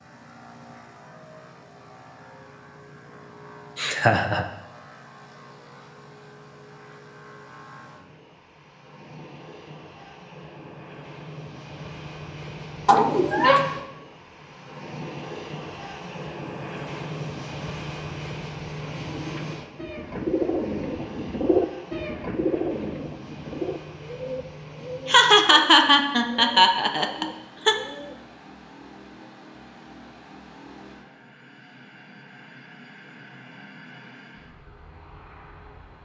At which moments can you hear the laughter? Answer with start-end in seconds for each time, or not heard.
3.8-4.5, 12.8-13.7, 25.1-27.8.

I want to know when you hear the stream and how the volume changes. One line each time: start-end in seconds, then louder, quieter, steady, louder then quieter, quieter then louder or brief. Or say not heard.
not heard.